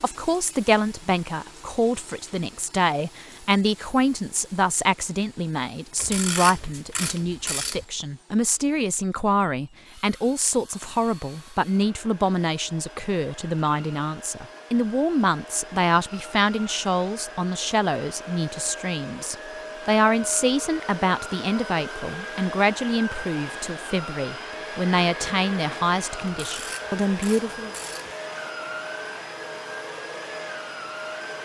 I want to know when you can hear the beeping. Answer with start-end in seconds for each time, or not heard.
not heard.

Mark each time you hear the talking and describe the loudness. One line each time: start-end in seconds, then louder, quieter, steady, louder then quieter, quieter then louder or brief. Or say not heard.
0.0-27.7 steady.